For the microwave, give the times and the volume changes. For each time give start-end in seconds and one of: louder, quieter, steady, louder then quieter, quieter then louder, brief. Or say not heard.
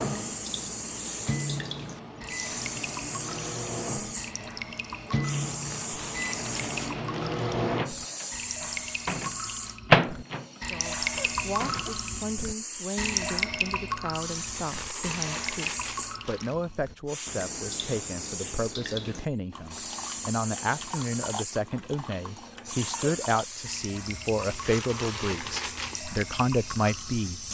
0.0-11.8 louder.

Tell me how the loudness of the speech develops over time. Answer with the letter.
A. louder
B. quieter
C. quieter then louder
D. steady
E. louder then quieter
A.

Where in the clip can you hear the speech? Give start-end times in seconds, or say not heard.
10.6-27.4.